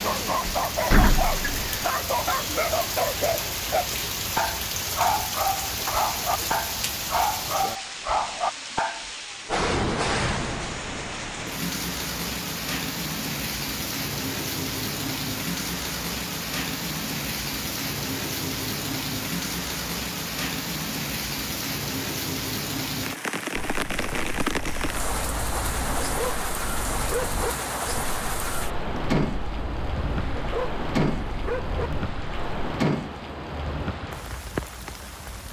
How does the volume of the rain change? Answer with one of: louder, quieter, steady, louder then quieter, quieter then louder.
steady.